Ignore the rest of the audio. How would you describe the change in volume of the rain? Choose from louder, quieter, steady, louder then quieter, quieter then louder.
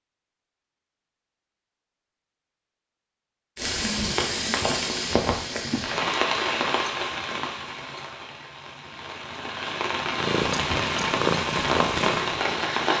quieter then louder.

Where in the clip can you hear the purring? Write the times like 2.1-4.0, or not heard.
10.1-12.8.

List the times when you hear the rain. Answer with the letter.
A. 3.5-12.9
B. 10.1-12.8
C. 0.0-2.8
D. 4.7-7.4
A.